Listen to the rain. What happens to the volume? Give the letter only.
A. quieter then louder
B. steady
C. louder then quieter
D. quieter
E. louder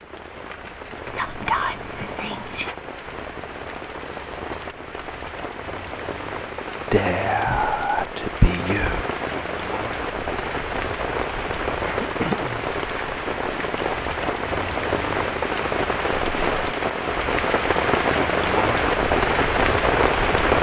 E.